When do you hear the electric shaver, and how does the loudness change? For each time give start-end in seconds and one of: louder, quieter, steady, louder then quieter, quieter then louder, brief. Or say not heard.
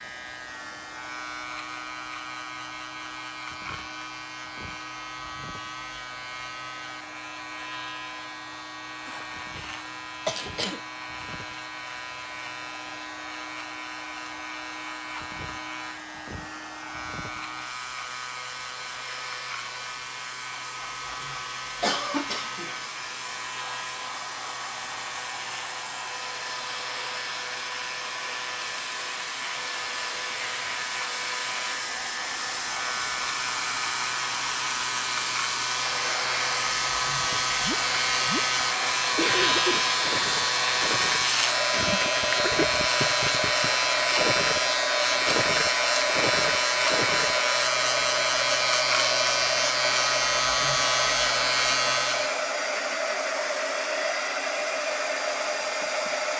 0.0-52.5 louder.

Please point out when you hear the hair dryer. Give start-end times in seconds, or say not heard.
0.0-56.3.